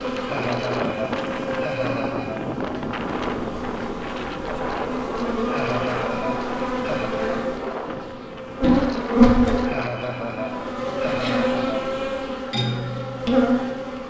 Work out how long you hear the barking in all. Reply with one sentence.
The barking can't be heard in this clip.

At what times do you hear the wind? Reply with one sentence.
You can hear the wind from 0.0 to 10.8 s.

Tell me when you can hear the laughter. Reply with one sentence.
You can hear the laughter from 0.2 to 2.5 s, from 5.5 to 7.1 s and from 9.7 to 11.9 s.